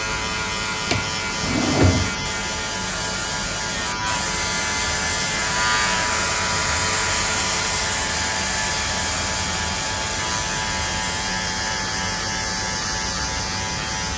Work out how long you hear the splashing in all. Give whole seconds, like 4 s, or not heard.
not heard.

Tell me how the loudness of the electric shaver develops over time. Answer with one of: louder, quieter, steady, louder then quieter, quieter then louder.
steady.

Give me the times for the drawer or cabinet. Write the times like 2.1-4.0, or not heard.
0.9-2.3.